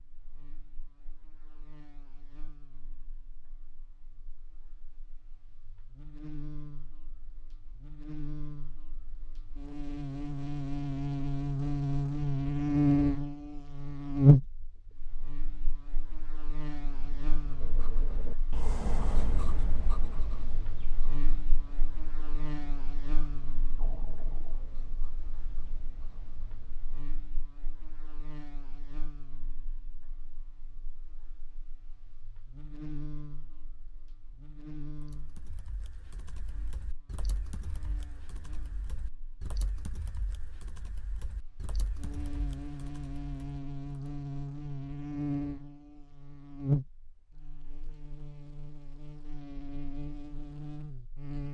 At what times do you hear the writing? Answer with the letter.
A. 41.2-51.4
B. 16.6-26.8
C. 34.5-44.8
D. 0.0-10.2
B.